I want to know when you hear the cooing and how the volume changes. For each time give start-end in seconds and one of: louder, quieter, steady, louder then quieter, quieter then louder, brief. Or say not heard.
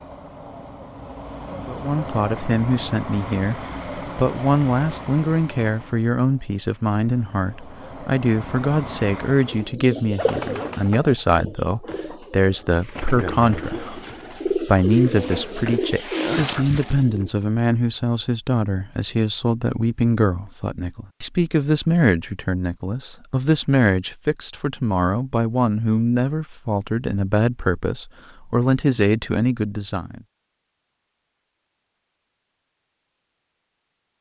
9.4-17.3 quieter then louder.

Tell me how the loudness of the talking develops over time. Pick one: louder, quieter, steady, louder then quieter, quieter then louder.
steady.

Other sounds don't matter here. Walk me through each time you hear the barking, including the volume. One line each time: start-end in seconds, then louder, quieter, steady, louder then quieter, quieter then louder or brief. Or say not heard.
not heard.